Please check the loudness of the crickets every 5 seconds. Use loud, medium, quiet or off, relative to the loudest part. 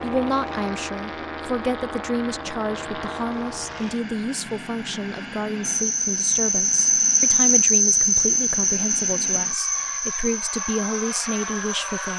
off, loud, medium.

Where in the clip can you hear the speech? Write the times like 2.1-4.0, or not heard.
0.0-12.1.